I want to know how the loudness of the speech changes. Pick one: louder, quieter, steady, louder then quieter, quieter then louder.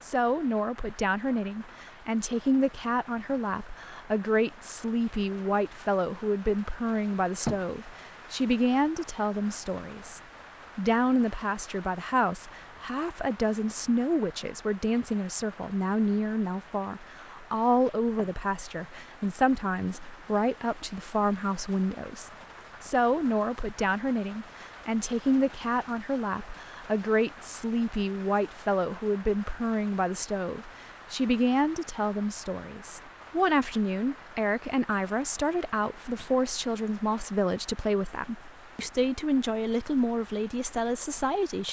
steady.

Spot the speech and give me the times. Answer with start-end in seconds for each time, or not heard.
0.0-41.6.